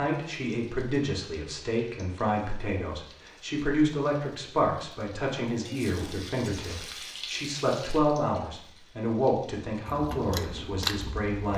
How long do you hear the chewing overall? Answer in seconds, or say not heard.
2 s.